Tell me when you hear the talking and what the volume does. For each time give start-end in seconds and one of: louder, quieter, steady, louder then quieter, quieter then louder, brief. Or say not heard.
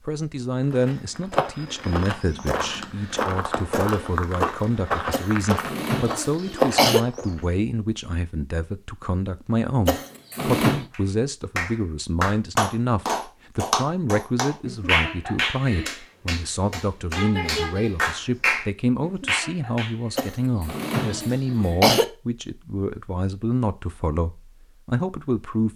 0.1-25.7 steady.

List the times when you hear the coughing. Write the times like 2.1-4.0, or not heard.
5.1-7.0, 9.8-10.8, 20.1-22.1.